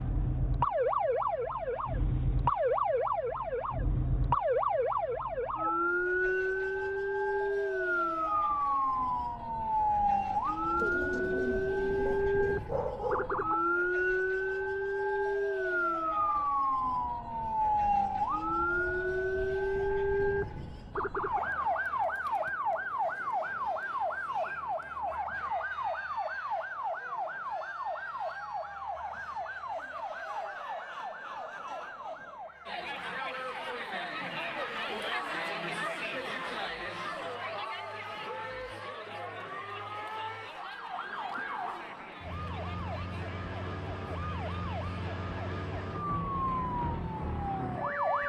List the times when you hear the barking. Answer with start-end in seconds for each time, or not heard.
12.1-13.6.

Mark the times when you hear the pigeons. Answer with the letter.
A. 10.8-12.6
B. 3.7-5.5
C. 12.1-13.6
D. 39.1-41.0
A.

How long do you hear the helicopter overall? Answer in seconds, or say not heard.
not heard.